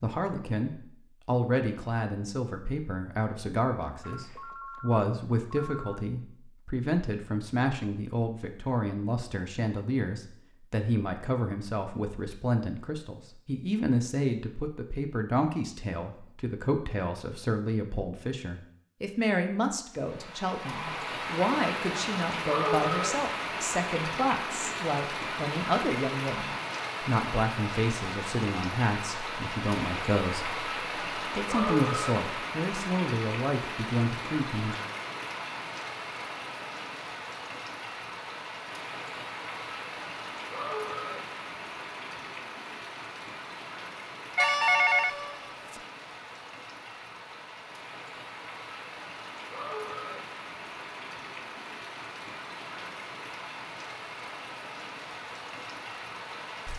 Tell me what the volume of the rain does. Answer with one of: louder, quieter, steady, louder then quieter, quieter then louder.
quieter.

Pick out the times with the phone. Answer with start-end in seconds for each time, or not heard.
4.0-6.0, 20.6-21.1, 44.4-45.8.